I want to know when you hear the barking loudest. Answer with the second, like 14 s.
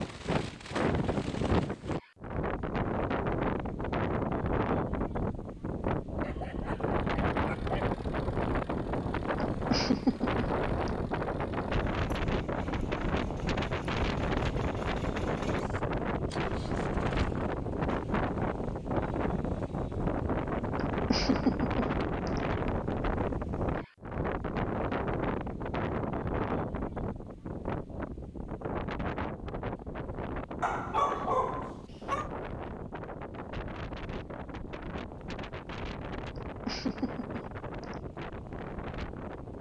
31 s.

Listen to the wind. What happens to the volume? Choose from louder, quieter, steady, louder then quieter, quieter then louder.
quieter.